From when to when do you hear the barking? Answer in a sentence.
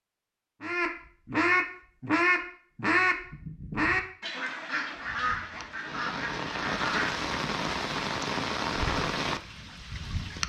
The barking can't be heard in this clip.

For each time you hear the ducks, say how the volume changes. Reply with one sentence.
You can hear the ducks from 0.6 to 7.2 s, getting quieter.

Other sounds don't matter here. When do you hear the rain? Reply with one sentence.
You can hear the rain from 4.8 to 10.4 s.